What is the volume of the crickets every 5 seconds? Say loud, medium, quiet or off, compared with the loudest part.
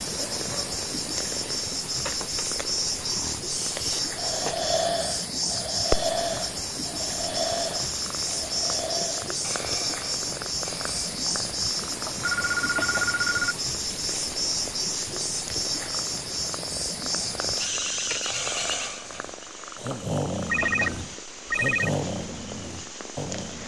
loud, loud, loud, loud, quiet.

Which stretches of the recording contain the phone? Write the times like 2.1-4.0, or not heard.
2.0-2.5, 12.2-13.6, 20.4-21.9.